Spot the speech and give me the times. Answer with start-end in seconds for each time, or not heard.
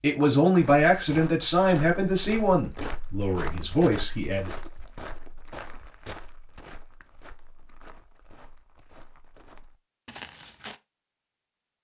0.0-4.5.